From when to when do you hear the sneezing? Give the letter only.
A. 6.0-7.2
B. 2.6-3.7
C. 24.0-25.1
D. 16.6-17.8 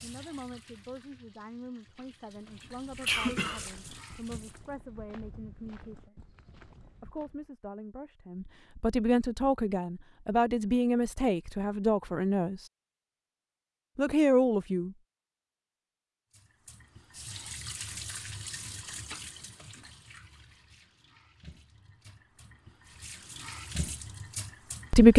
B.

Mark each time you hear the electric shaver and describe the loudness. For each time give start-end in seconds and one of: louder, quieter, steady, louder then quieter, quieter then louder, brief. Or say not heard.
not heard.